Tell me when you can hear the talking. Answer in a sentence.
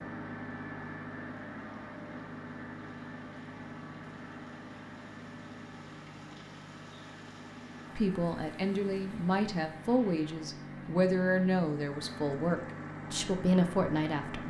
The talking can be heard from 8.0 to 14.4 s.